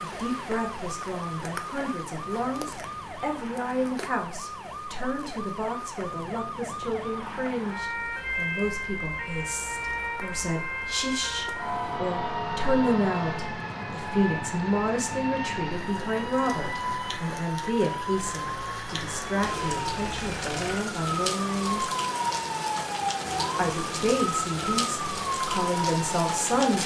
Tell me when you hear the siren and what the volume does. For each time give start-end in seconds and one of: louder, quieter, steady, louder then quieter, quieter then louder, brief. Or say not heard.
0.0-26.6 louder.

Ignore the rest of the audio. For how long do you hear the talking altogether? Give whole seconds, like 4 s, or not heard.
25 s.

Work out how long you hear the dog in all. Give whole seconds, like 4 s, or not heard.
not heard.